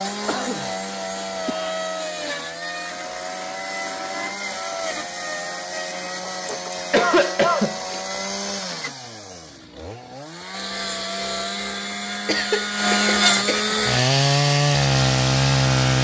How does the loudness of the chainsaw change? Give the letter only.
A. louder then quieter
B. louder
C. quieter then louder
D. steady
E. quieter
B.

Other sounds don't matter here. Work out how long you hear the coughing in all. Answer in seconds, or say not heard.
5 s.